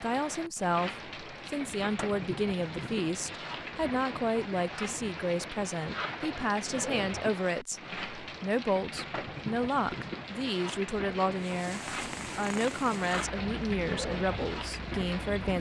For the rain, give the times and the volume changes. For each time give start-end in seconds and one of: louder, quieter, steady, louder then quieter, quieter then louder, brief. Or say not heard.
0.0-15.5 steady.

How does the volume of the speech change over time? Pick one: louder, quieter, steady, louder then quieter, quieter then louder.
steady.